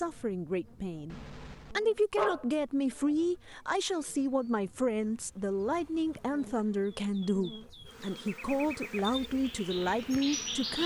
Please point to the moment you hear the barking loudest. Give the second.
2 s.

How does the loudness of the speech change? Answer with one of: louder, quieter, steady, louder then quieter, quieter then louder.
steady.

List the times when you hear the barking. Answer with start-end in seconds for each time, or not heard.
1.1-2.7.